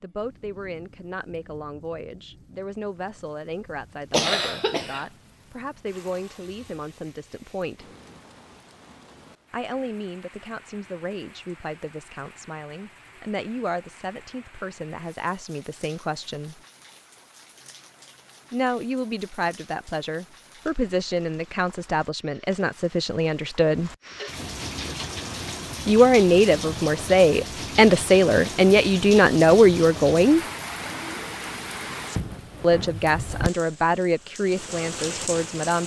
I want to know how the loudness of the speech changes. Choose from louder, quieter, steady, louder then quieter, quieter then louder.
louder.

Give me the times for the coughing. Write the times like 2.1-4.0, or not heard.
4.1-5.0.